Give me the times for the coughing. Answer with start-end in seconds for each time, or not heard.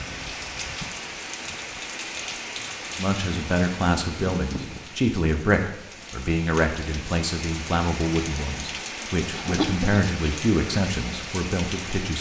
9.3-10.0.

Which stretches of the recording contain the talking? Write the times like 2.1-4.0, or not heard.
2.9-12.1.